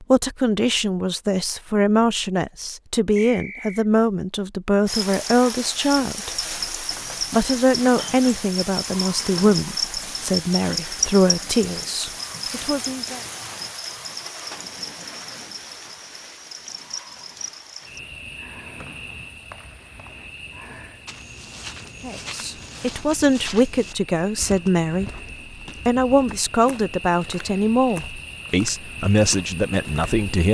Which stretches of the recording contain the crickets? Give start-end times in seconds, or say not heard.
4.8-30.4.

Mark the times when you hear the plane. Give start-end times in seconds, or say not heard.
not heard.